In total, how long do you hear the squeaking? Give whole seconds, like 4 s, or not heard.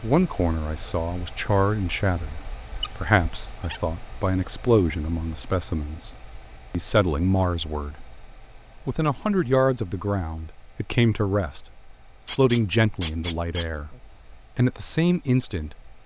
3 s.